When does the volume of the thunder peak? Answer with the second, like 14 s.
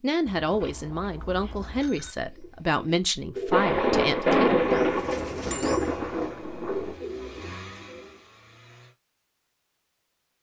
4 s.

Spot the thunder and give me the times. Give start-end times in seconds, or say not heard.
3.5-7.0.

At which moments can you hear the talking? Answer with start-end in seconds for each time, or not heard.
0.0-4.5.